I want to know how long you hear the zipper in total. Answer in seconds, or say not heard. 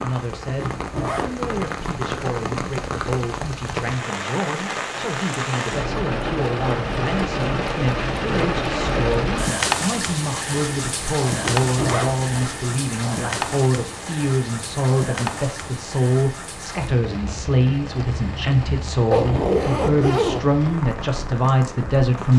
3 s.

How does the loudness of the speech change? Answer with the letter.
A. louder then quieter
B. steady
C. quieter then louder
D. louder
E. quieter
D.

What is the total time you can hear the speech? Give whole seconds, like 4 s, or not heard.
22 s.